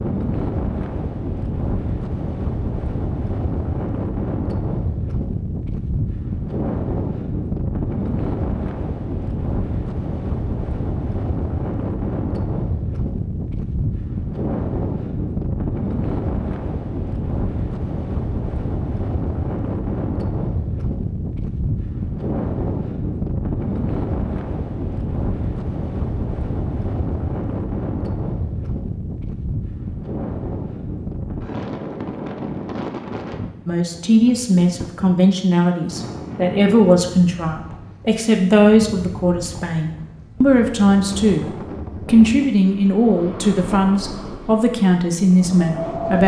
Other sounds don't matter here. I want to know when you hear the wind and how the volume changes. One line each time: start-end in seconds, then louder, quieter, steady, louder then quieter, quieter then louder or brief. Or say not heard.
0.0-46.2 quieter.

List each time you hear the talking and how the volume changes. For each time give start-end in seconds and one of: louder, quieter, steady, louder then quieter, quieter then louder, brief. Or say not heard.
33.6-41.5 steady
42.0-46.2 steady.